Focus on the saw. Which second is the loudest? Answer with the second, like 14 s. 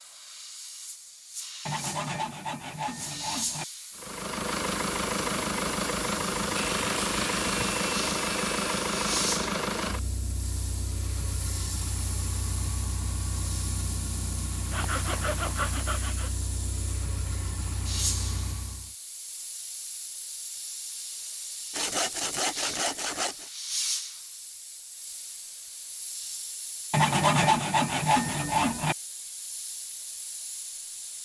27 s.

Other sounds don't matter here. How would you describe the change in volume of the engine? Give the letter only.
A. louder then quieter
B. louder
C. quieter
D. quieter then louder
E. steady
C.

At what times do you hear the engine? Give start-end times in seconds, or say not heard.
4.0-18.9.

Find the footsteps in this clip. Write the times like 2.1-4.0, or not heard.
not heard.